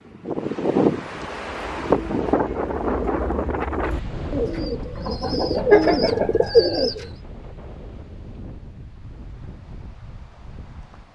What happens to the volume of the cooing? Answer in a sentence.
The loudness of the cooing goes up.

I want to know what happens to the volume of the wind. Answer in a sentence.
The volume of the wind goes down.